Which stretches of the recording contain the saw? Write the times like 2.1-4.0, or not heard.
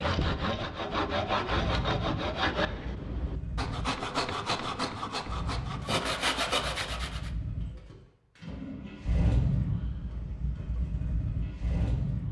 0.0-7.3.